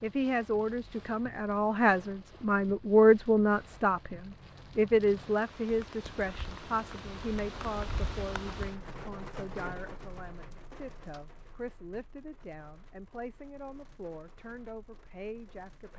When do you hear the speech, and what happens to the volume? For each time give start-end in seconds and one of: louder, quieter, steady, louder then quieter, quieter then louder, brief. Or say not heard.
0.0-15.9 quieter.